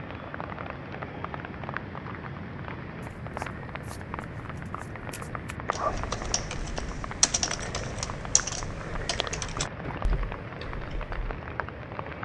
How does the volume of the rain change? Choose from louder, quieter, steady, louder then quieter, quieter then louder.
steady.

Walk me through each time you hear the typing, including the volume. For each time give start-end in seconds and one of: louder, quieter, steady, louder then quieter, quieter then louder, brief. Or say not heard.
5.7-11.2 louder then quieter.